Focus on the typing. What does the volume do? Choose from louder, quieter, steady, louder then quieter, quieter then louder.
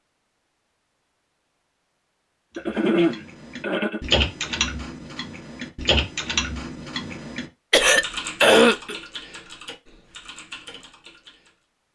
quieter.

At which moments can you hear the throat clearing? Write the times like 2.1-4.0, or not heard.
2.5-4.0, 7.7-8.9.